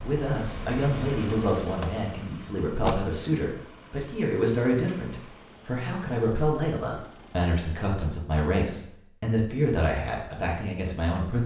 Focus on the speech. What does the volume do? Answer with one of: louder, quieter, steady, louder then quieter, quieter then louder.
steady.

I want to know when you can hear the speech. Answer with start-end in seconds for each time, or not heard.
0.0-11.4.